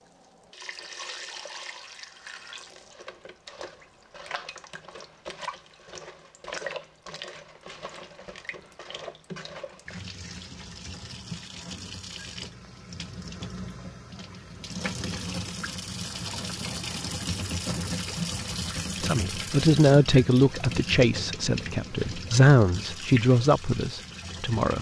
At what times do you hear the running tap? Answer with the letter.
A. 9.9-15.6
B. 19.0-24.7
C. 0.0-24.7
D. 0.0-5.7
C.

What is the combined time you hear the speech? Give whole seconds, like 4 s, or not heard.
6 s.